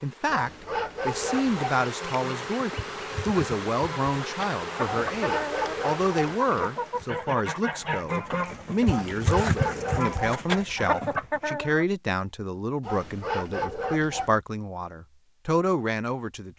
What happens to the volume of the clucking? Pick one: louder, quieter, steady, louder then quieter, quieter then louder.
louder.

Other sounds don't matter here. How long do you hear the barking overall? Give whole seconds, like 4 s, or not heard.
6 s.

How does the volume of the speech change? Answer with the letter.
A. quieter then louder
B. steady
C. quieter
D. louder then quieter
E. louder
B.